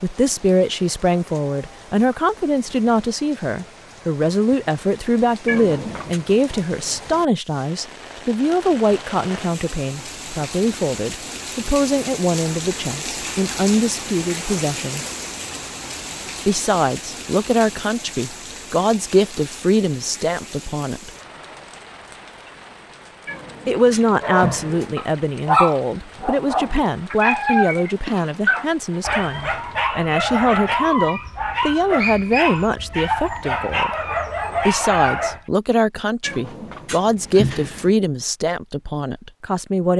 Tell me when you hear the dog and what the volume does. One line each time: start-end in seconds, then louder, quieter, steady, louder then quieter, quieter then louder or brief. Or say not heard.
24.2-35.4 steady.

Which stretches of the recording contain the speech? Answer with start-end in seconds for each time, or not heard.
0.0-15.1, 16.4-21.1, 23.6-33.9, 34.6-39.9.